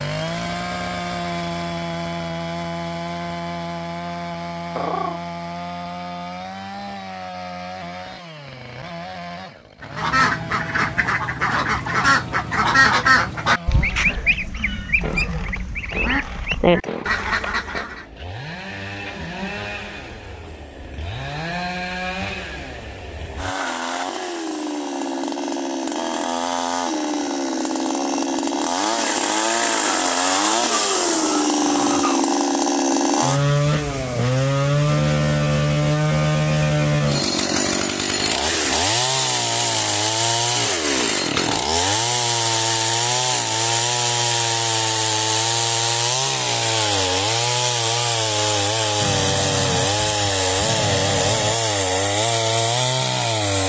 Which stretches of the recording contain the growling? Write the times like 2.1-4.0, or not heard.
4.8-5.2, 30.6-32.2, 49.0-51.6.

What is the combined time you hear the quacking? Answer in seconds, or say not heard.
8 s.